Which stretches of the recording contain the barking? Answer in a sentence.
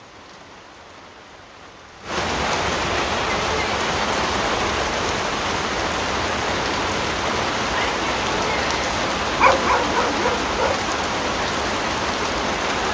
The barking can be heard from 9.3 to 10.8 s.